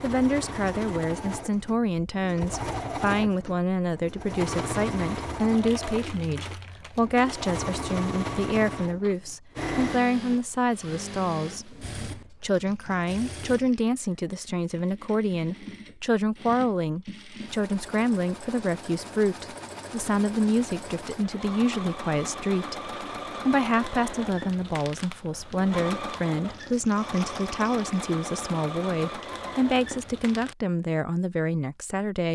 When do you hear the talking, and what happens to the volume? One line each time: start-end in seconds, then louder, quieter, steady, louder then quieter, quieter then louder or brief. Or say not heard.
0.0-32.2 steady.